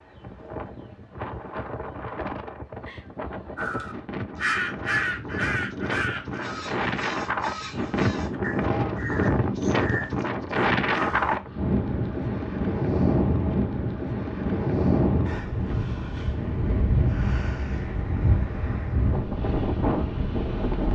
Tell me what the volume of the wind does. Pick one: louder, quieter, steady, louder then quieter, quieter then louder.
louder.